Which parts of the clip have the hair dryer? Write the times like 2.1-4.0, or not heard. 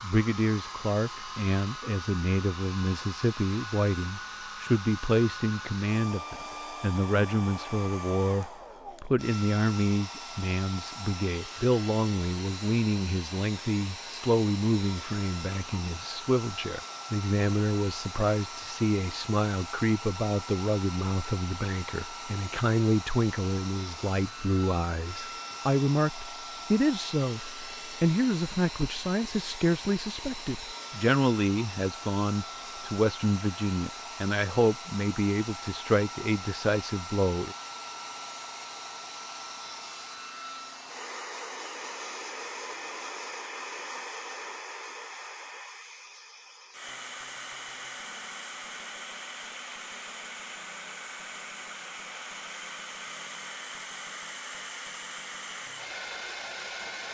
0.0-57.1.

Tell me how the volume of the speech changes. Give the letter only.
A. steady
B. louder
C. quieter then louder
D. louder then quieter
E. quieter
A.